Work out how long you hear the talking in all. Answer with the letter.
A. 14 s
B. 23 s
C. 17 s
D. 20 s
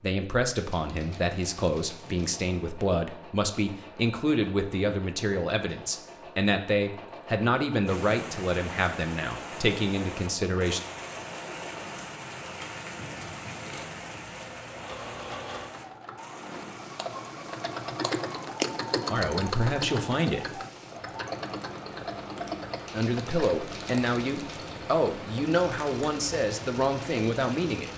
C.